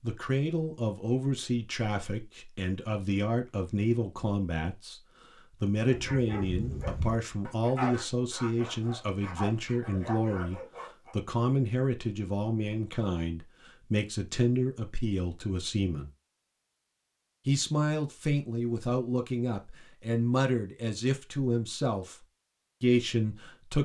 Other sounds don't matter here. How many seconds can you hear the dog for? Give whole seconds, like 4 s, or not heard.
5 s.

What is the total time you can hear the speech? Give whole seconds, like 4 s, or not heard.
21 s.